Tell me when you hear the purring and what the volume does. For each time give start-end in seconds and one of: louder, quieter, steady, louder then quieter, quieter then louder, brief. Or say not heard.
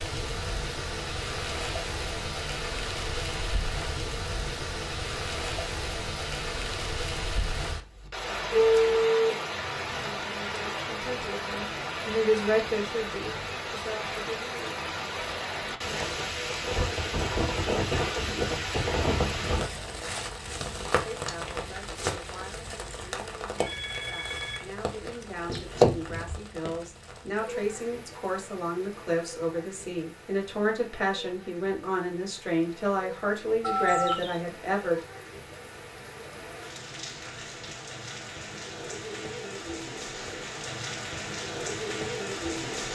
not heard.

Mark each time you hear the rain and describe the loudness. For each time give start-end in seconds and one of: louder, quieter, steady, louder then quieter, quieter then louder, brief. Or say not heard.
0.0-42.8 quieter then louder.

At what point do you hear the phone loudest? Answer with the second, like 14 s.
9 s.